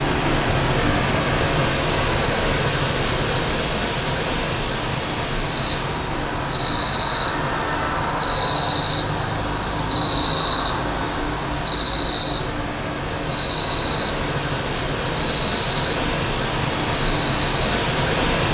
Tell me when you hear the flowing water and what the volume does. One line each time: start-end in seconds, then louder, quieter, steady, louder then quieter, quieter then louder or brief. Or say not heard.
0.0-18.4 quieter then louder.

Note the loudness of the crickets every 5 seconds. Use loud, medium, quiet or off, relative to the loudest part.
off, loud, loud, loud.